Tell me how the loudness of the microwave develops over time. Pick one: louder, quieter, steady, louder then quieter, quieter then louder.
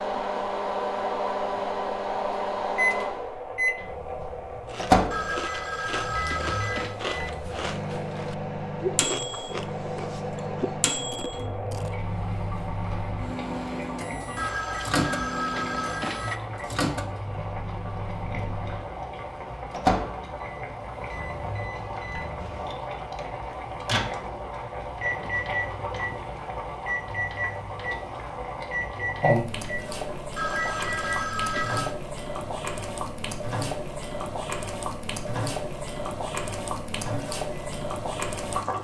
quieter.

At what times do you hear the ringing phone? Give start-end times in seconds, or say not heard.
5.1-7.0, 14.3-16.4, 30.4-31.9.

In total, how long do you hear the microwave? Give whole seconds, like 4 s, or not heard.
39 s.